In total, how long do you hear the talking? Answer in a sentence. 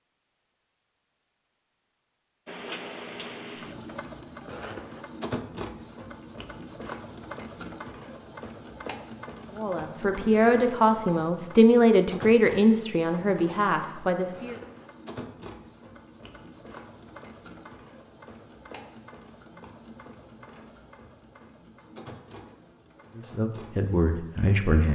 You can hear the talking for 7 seconds altogether.